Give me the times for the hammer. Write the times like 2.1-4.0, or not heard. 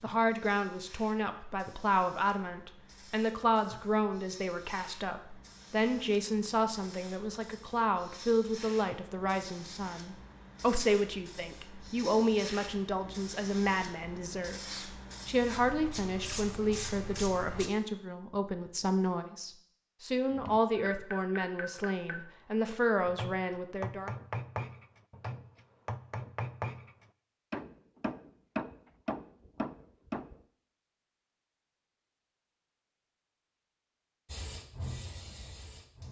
20.3-30.4.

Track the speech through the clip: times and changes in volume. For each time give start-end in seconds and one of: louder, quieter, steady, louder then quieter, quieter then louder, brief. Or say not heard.
0.0-24.1 steady.